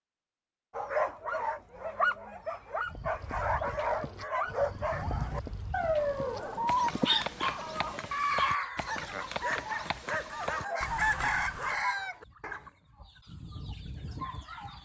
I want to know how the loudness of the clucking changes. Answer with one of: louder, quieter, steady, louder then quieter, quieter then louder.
quieter.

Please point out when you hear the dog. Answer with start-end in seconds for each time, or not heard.
0.8-12.7.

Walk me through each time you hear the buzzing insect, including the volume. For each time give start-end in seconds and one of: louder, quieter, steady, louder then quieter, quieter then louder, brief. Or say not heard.
not heard.